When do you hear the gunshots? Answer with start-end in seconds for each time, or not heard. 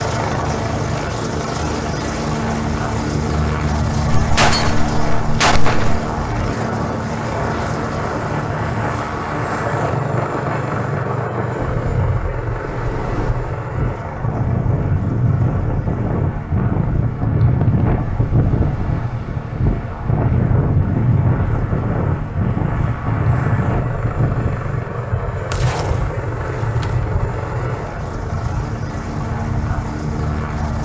4.2-6.0, 25.5-26.9.